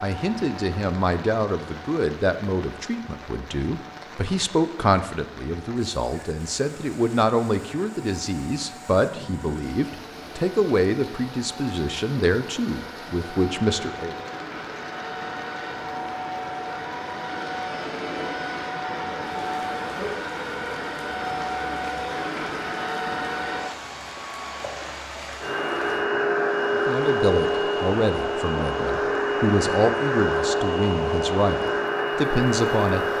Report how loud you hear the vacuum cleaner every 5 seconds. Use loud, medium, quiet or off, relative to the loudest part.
quiet, quiet, quiet, medium, medium, loud, loud.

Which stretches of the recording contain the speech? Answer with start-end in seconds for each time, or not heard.
0.0-14.2, 26.7-33.0.